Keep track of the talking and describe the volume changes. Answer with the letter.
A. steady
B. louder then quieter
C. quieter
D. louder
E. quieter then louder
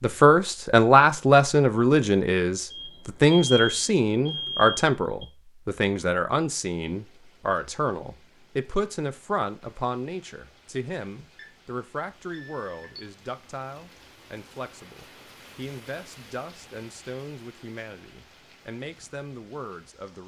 C.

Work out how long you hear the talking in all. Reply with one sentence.
The talking can be heard for 20 seconds in total.